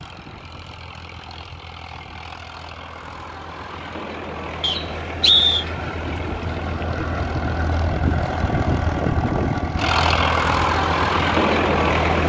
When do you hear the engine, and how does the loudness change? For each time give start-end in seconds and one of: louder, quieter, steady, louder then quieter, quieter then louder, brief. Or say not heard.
0.0-12.2 louder.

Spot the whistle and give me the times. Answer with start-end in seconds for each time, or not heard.
4.6-5.7.